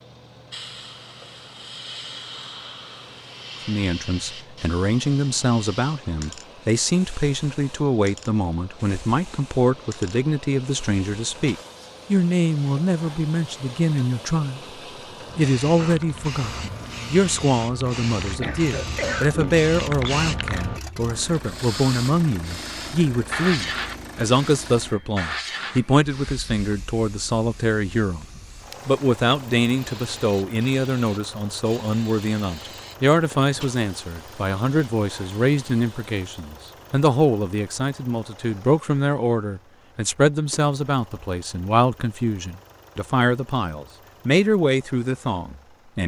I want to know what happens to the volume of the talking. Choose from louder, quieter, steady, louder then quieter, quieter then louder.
steady.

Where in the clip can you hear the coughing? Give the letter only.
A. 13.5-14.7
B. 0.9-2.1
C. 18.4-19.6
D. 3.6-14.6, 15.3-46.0
C.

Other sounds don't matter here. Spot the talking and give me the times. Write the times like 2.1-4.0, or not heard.
3.6-14.6, 15.3-46.0.